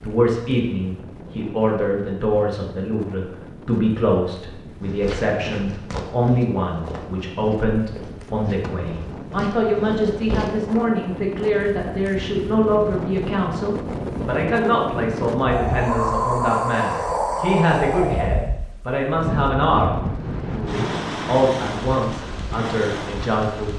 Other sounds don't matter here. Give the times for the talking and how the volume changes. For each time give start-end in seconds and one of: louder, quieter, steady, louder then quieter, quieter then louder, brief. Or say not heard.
0.0-23.7 steady.